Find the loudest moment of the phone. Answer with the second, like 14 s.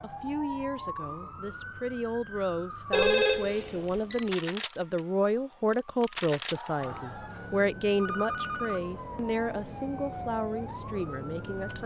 3 s.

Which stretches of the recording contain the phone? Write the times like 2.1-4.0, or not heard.
2.9-4.2, 6.5-8.8.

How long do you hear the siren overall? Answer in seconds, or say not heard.
12 s.